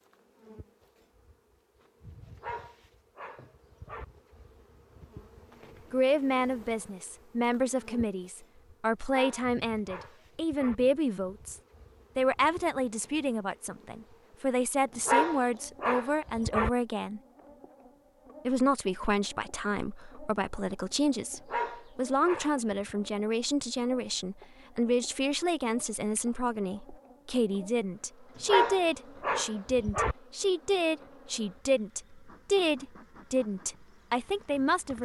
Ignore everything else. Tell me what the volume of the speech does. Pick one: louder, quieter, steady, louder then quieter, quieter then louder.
steady.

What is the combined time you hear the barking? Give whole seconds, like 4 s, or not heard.
8 s.